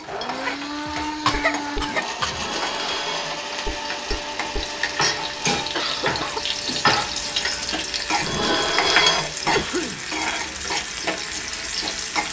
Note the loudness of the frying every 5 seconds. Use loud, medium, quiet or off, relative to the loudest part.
medium, loud, loud.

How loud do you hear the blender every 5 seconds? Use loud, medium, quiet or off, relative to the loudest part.
loud, medium, medium.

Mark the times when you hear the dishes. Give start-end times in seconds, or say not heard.
0.9-9.7.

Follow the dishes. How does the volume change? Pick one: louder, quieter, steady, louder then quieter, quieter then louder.
louder.